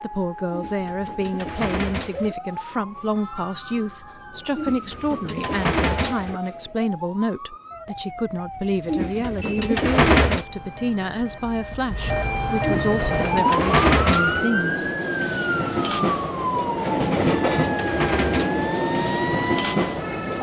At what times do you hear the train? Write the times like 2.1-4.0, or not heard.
12.9-20.3.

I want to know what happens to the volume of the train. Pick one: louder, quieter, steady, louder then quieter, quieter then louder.
louder.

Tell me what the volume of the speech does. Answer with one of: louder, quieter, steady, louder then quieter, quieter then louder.
steady.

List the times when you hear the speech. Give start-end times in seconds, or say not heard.
0.0-14.9.